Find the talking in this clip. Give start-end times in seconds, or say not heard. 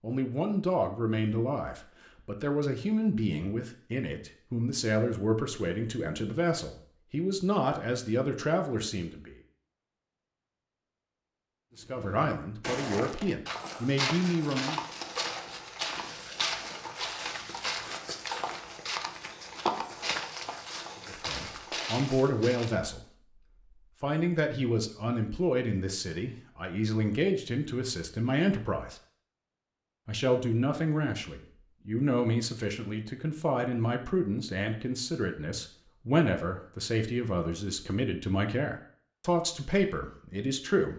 0.0-9.3, 11.8-14.8, 21.1-23.0, 24.0-28.9, 30.1-40.9.